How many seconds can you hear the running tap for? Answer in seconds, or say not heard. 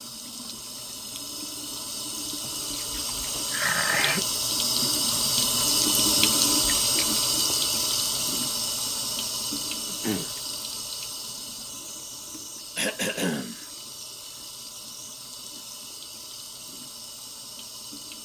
18 s.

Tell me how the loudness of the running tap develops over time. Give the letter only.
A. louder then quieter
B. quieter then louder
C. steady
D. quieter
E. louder
A.